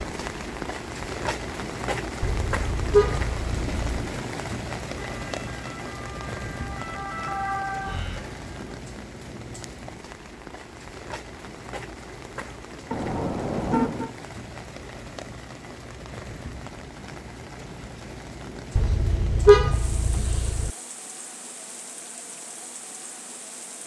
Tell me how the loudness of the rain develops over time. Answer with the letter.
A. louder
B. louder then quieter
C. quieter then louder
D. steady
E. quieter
E.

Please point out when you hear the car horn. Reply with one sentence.
The car horn can be heard from 2.2 to 3.9 s, from 12.9 to 14.1 s and from 18.8 to 20.7 s.